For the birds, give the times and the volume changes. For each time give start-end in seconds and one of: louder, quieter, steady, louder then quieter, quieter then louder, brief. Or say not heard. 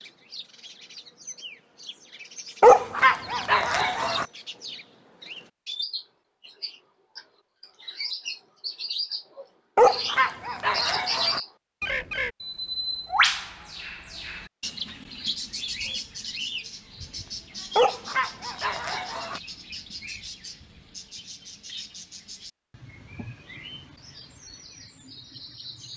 0.0-25.9 louder then quieter.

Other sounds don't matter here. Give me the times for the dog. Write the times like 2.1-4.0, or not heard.
2.6-4.2, 9.8-11.4, 17.8-19.4.